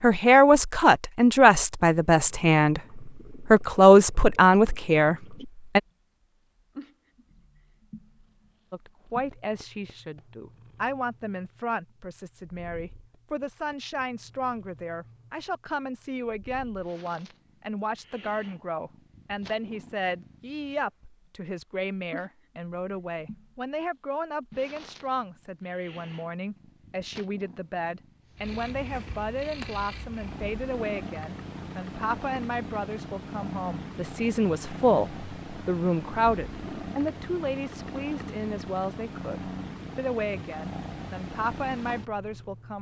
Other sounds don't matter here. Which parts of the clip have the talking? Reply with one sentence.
You can hear the talking from 0.0 to 5.8 s and from 8.7 to 42.7 s.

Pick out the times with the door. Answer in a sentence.
You can't hear the door here.